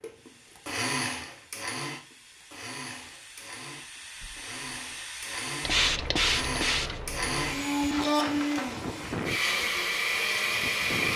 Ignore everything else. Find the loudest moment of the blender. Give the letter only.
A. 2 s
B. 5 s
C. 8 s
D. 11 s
C.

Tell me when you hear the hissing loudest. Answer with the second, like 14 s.
6 s.